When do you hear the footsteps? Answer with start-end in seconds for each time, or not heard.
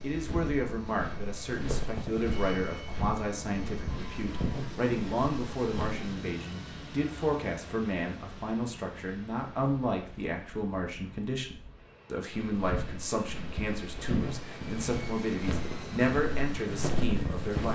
0.0-6.2, 12.3-17.6.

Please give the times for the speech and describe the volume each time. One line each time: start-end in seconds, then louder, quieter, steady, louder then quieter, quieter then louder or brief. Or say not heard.
0.0-17.6 steady.